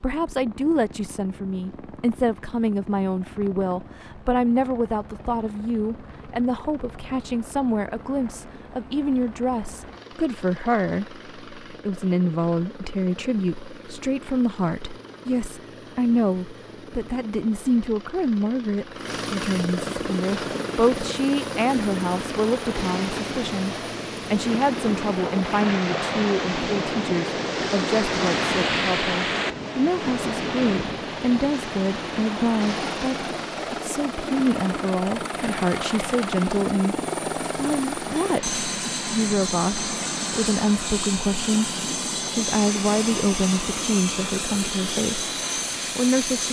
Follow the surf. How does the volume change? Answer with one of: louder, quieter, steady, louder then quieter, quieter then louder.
louder then quieter.